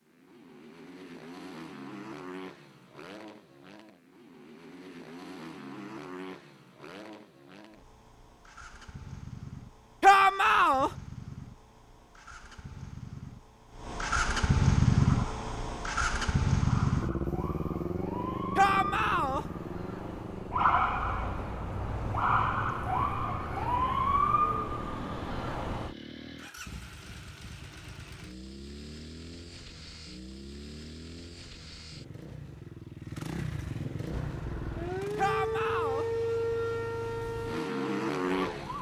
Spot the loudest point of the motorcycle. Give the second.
15 s.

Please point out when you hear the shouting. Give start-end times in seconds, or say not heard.
10.0-10.9, 18.6-19.4, 35.1-36.0.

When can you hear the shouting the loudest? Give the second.
10 s.